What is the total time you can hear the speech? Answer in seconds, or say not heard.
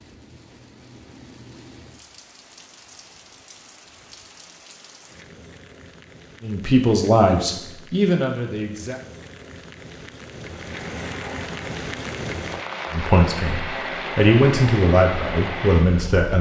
6 s.